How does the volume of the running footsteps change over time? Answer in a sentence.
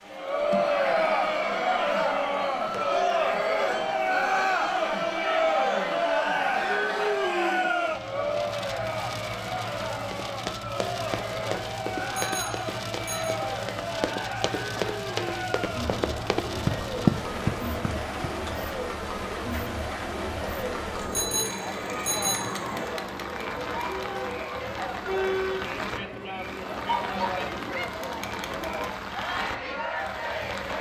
The loudness of the running footsteps goes up.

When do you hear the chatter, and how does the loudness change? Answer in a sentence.
The chatter can be heard from 0.1 to 30.7 s, getting quieter.